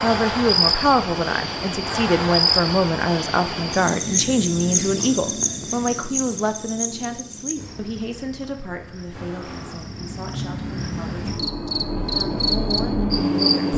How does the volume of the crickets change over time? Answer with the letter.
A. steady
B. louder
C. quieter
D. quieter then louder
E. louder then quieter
D.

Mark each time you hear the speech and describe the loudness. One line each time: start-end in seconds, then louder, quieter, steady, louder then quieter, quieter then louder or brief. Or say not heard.
0.0-13.7 quieter.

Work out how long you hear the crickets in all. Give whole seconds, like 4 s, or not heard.
14 s.